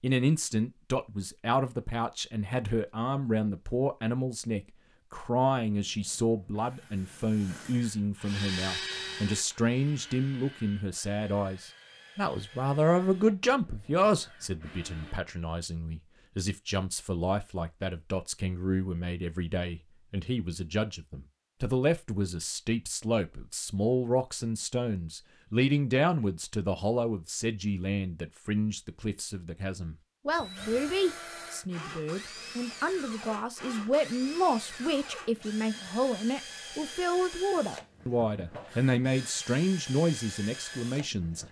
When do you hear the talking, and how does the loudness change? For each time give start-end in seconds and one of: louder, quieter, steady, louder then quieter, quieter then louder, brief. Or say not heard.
0.0-41.4 steady.